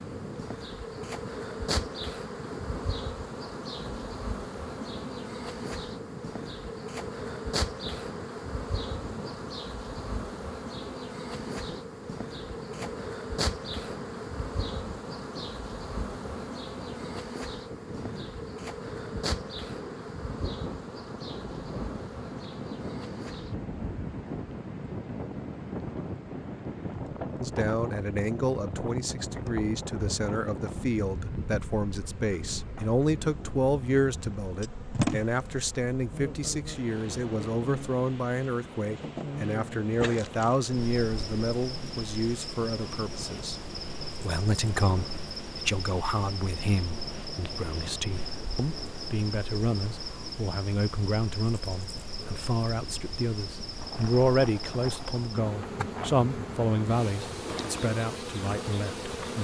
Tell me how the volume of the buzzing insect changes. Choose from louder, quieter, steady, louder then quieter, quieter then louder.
steady.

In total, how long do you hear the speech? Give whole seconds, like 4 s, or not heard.
31 s.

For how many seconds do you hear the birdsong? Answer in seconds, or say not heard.
not heard.